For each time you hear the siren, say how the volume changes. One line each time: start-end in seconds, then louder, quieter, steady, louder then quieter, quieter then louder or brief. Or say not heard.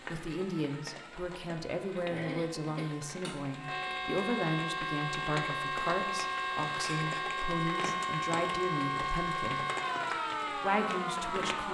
0.0-11.7 louder.